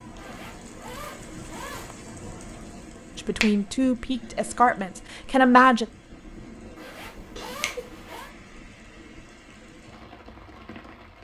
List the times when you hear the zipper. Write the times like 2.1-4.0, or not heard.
0.1-1.9, 6.8-8.3.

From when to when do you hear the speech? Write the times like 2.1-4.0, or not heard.
3.1-5.8.